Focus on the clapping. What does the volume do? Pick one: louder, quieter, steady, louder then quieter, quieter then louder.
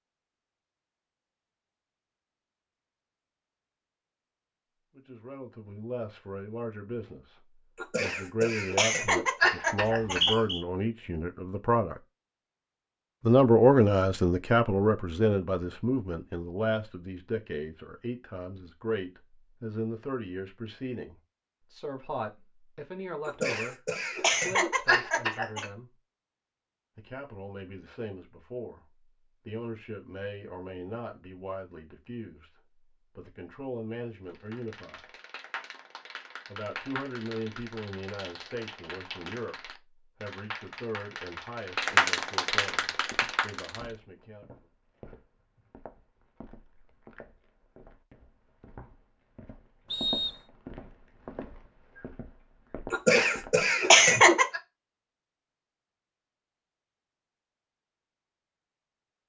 louder.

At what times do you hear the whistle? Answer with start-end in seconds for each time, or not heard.
9.8-10.7, 49.9-50.4.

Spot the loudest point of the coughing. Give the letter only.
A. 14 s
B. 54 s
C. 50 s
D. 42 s
B.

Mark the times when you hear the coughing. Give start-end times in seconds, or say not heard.
7.8-10.4, 23.2-25.6, 52.9-54.6.